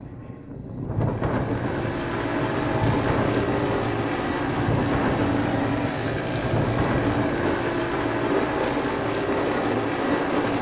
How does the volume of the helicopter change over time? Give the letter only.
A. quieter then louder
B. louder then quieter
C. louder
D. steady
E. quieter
D.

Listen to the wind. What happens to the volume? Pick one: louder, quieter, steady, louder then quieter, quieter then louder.
steady.